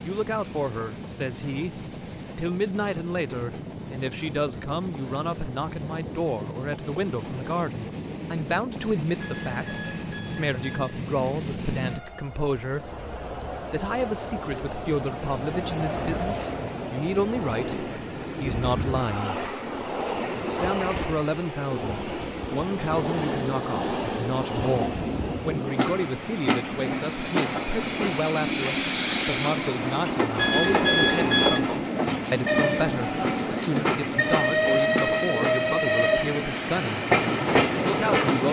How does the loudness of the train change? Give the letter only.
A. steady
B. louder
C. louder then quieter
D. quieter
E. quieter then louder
B.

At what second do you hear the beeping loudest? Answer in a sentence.
The volume of the beeping peaks at 31 seconds.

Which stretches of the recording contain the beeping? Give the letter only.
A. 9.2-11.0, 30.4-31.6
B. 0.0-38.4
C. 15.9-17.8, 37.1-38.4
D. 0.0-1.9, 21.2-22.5
A.